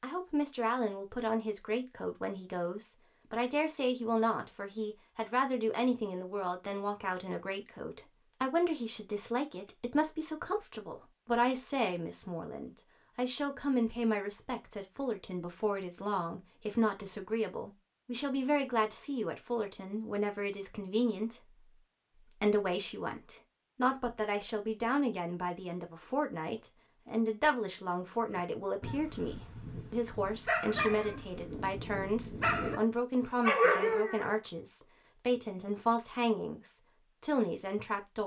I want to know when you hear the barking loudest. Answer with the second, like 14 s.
34 s.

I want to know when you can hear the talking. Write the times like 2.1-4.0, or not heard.
0.0-38.2.